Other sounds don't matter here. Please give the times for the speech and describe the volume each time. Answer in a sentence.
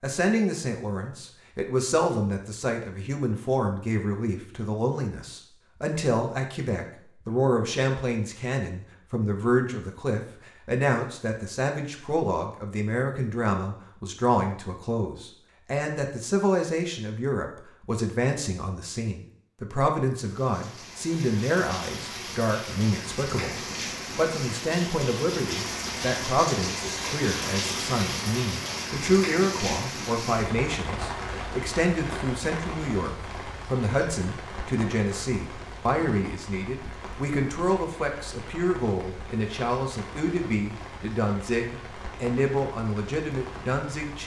The speech can be heard from 0.0 to 44.2 s, at a steady volume.